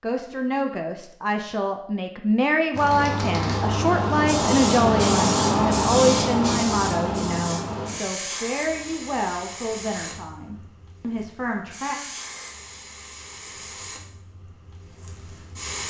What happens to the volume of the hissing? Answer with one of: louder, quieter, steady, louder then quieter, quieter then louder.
quieter.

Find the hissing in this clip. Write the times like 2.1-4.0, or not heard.
2.7-15.8.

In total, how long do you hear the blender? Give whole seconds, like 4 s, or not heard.
not heard.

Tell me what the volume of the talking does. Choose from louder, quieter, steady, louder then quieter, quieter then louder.
quieter.